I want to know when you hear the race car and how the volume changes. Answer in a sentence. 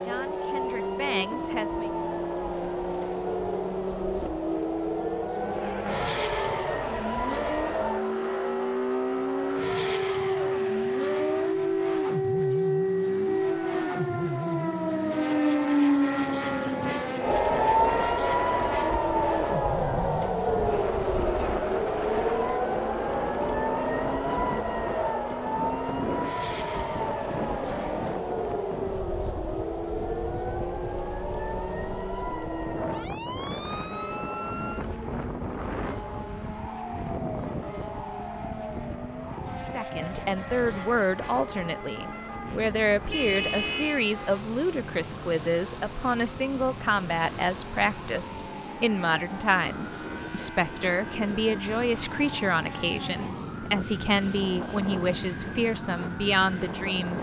The race car can be heard from 0.0 to 57.1 s, getting quieter.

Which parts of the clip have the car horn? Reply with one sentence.
The car horn can be heard from 42.6 to 44.0 s.